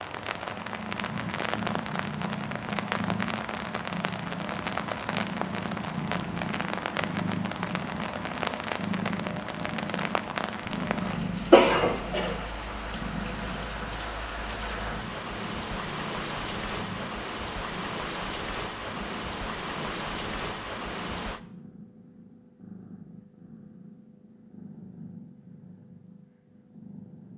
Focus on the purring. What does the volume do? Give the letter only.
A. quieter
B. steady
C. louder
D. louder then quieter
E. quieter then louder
A.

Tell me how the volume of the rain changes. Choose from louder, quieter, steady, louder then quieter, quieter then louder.
steady.